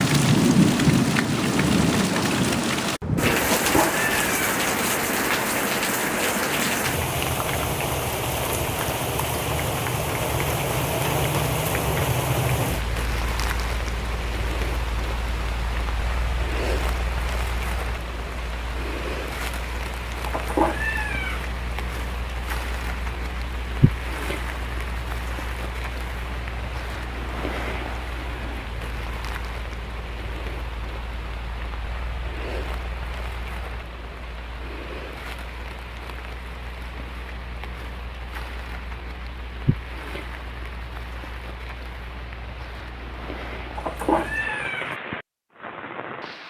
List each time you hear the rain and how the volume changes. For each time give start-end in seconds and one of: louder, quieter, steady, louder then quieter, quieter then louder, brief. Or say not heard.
0.0-46.4 quieter.